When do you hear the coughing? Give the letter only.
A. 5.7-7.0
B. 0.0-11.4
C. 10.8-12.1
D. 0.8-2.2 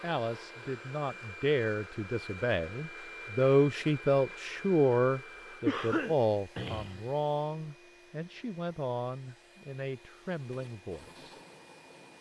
A.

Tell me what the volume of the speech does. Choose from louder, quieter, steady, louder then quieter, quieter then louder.
louder then quieter.